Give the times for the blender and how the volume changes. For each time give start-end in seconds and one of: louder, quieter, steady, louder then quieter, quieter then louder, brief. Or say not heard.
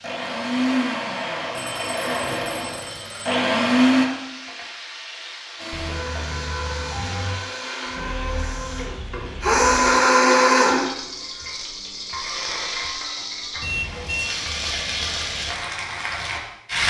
0.0-4.1 quieter then louder
5.5-10.9 louder.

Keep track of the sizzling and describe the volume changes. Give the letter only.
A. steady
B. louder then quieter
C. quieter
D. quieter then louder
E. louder
E.